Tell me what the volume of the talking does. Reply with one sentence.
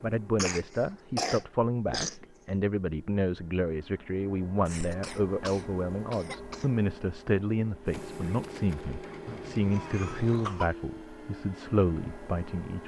The volume of the talking stays about the same.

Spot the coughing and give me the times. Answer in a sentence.
You can hear the coughing from 0.3 to 2.1 s, from 4.7 to 6.7 s and from 9.2 to 10.7 s.